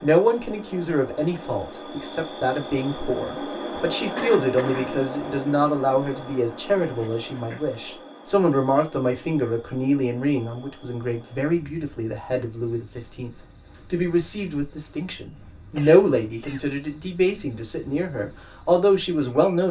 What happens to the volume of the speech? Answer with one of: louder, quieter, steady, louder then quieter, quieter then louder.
steady.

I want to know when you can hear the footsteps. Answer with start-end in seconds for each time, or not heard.
not heard.